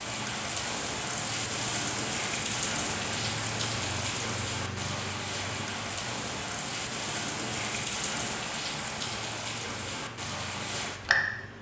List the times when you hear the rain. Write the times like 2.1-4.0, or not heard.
0.0-11.5.